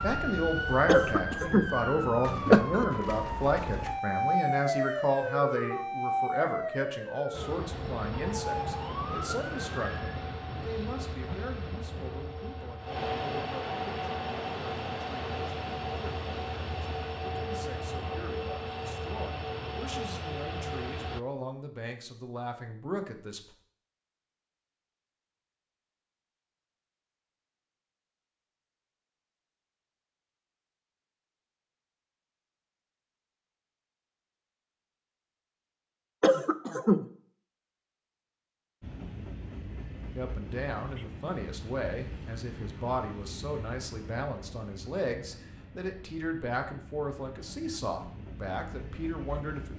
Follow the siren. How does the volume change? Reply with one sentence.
The loudness of the siren goes up, then down.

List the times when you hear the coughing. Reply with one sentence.
The coughing can be heard from 0.8 to 1.8 s and from 36.2 to 37.0 s.